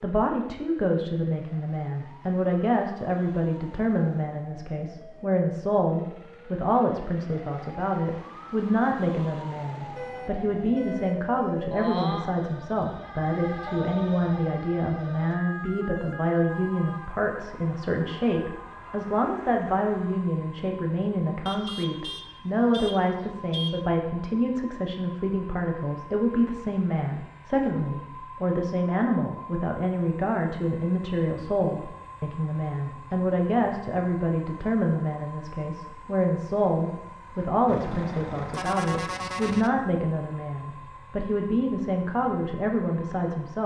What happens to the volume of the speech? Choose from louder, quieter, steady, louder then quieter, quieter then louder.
steady.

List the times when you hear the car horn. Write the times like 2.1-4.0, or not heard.
9.8-11.3, 21.4-23.9, 37.6-39.7.